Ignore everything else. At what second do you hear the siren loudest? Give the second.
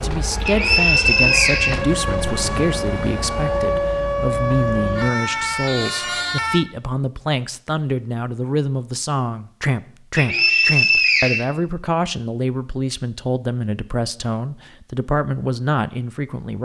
4 s.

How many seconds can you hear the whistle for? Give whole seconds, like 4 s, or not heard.
3 s.